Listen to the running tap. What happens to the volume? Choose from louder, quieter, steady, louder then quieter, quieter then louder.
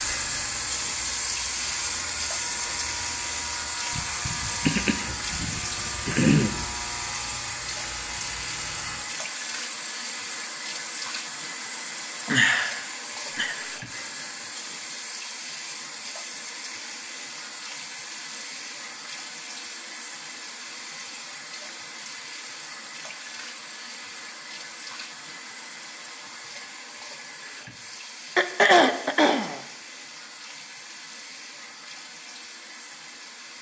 quieter.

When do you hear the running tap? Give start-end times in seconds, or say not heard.
0.0-33.5.